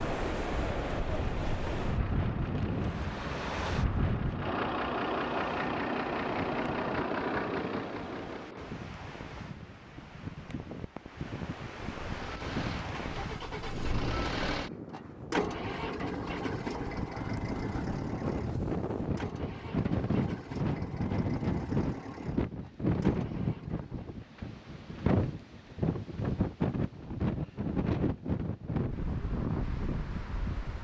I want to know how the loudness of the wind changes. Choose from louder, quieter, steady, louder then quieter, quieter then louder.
quieter then louder.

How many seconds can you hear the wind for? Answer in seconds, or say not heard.
31 s.